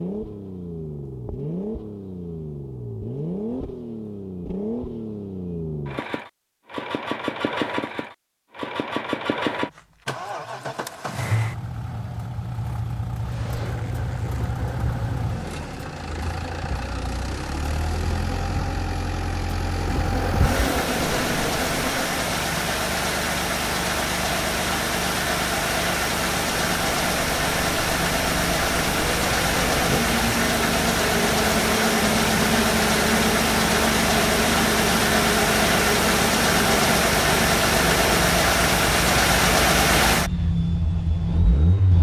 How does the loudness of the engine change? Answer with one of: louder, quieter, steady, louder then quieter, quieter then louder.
louder.